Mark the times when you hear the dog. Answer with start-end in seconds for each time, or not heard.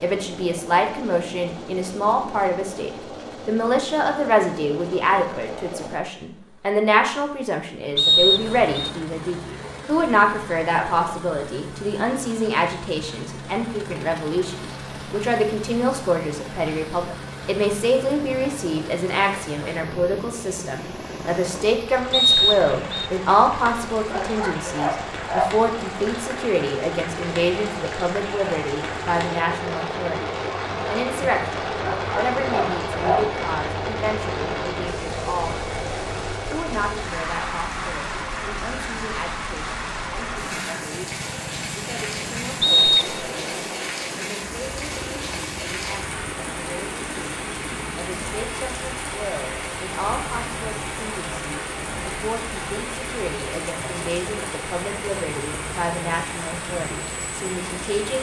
24.1-25.6, 31.8-33.3.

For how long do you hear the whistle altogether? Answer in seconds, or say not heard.
3 s.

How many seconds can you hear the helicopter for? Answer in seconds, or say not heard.
58 s.